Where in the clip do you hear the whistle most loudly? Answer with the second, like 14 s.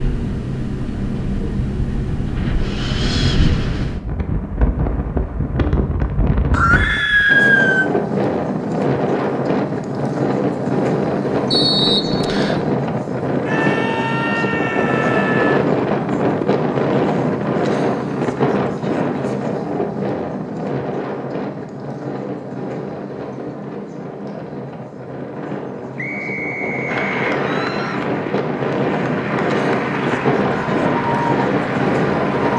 12 s.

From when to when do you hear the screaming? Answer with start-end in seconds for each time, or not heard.
6.5-7.9, 13.4-15.7, 27.4-28.1.